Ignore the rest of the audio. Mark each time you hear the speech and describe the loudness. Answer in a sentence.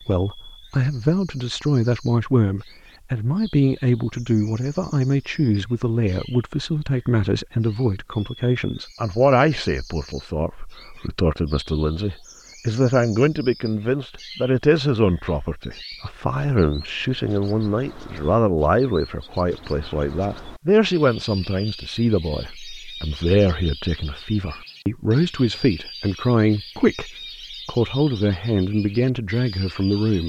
You can hear the speech from 0.1 to 30.2 s, at a steady volume.